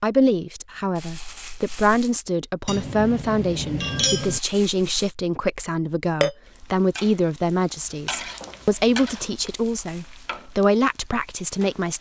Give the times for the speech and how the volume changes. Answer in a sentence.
The speech can be heard from 0.0 to 11.9 s, at a steady volume.